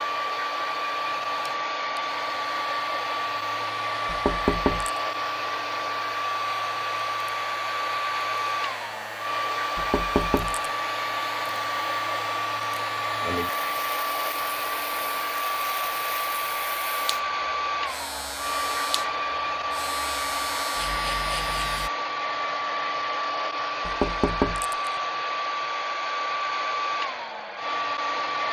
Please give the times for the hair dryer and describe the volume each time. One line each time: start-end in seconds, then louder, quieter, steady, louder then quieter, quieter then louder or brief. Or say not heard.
0.0-28.4 steady.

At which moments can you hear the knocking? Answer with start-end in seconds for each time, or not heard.
4.0-4.9, 9.8-10.7, 23.9-24.9.